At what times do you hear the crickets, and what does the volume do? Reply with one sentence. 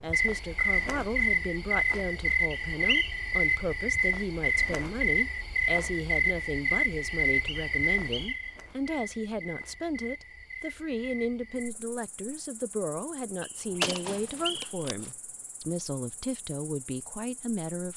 The crickets can be heard from 0.0 to 17.9 s, getting quieter.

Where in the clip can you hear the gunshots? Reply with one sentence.
You can hear the gunshots from 13.8 to 15.1 s.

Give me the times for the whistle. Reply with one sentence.
You can hear the whistle from 2.5 to 3.2 s, from 7.2 to 8.6 s and from 13.4 to 14.8 s.